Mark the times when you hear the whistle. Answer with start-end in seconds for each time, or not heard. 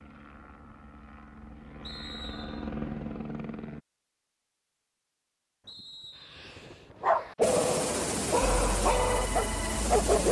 1.8-2.7, 5.7-6.5.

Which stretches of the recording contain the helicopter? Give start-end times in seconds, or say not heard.
0.0-3.8, 7.4-10.2.